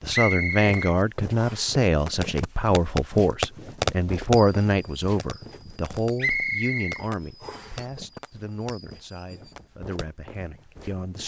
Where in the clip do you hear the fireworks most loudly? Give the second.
4 s.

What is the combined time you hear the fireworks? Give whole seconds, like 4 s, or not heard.
8 s.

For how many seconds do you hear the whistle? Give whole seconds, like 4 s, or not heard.
3 s.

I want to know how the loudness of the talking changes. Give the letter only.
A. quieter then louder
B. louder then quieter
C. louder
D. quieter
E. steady
D.